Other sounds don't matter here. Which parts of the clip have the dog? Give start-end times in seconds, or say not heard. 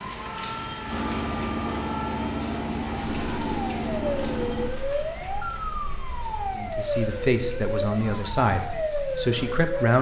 not heard.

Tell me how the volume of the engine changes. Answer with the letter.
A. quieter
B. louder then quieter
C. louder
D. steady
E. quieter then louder
D.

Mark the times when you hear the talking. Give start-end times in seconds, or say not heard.
6.5-9.9.